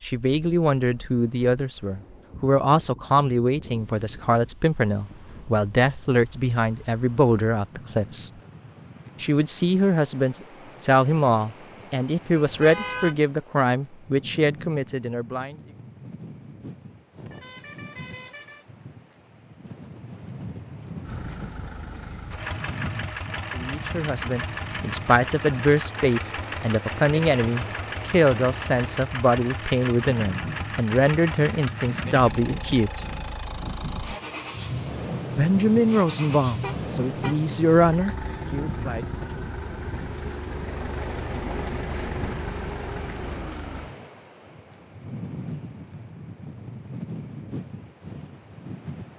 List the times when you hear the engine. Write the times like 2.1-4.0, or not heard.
21.0-43.9.